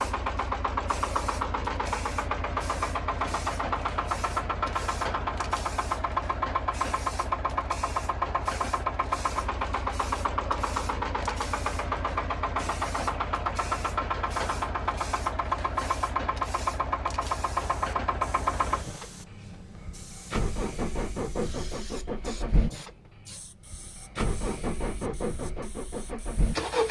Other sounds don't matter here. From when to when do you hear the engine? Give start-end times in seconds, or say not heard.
0.0-26.8.